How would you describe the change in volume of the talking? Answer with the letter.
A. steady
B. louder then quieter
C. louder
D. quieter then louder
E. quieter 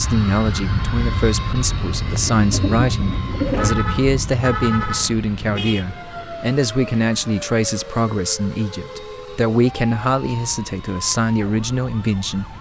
A.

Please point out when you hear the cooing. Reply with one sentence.
The cooing can be heard from 2.1 to 3.8 s.